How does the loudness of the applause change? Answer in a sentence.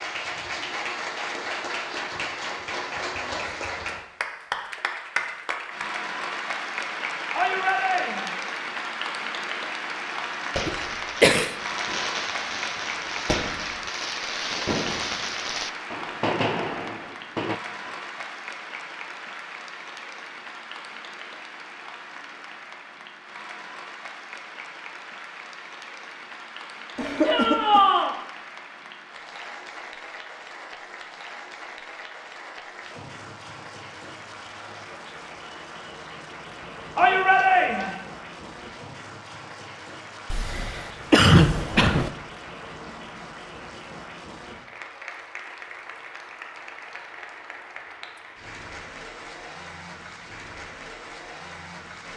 The volume of the applause goes down.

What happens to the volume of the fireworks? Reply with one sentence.
The volume of the fireworks goes up.